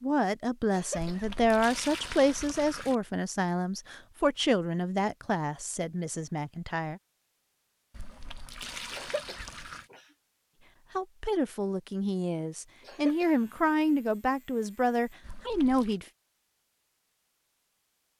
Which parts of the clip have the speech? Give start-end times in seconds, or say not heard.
0.0-7.0, 10.9-16.1.